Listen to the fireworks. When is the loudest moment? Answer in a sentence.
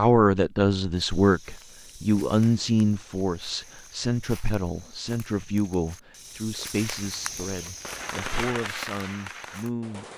The volume of the fireworks peaks at 8 seconds.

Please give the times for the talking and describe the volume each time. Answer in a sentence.
The talking can be heard from 0.0 to 10.1 s, getting quieter.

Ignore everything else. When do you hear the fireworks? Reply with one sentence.
The fireworks can be heard from 7.8 to 10.1 s.